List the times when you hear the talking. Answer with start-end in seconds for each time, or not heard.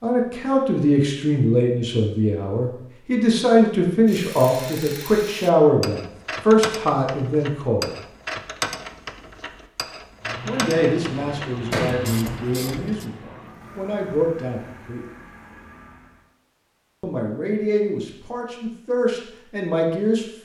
0.0-7.9, 10.4-15.1, 17.0-20.4.